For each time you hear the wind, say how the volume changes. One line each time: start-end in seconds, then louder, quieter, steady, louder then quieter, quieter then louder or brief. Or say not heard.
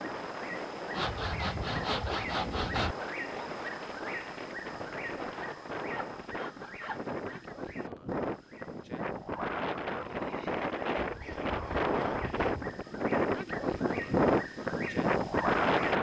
0.0-15.9 louder.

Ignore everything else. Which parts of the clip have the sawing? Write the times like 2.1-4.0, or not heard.
0.9-3.0, 5.5-7.5, 11.0-12.7.